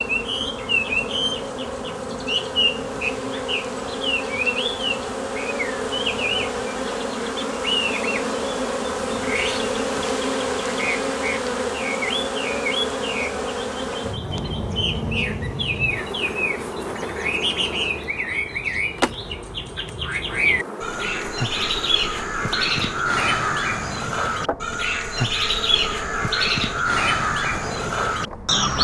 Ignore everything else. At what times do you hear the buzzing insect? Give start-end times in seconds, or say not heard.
0.0-28.7.